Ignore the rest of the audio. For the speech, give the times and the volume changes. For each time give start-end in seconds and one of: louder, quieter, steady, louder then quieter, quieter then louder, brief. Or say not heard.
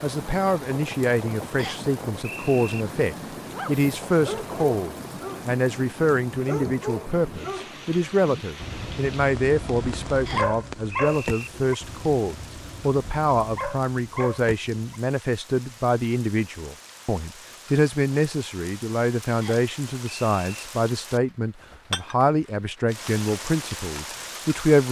0.0-24.8 steady.